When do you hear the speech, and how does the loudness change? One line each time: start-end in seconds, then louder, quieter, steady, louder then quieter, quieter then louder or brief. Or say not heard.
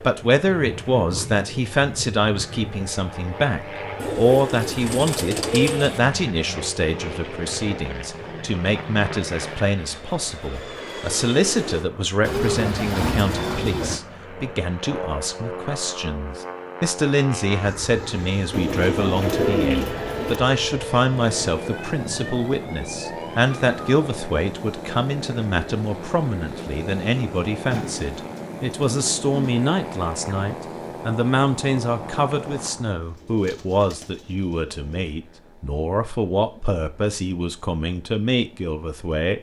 0.0-39.3 steady.